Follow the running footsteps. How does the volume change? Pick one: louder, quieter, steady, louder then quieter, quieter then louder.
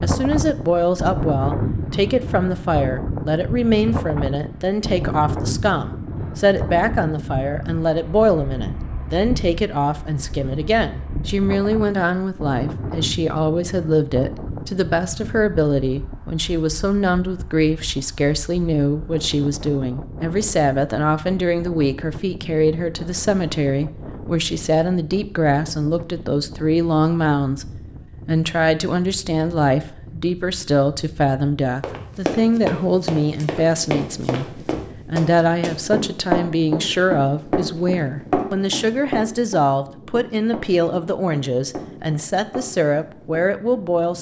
quieter.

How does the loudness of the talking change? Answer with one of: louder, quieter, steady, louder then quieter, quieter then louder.
steady.